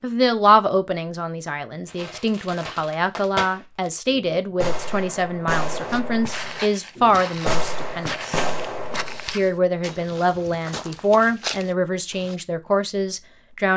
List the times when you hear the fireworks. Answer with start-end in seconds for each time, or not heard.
1.9-9.3.